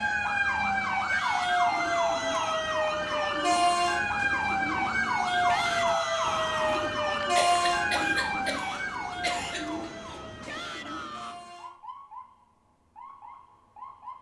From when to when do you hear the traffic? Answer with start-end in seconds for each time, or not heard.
not heard.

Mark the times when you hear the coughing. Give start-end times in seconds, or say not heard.
7.3-9.6.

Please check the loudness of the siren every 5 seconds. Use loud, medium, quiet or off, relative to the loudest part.
loud, loud, quiet.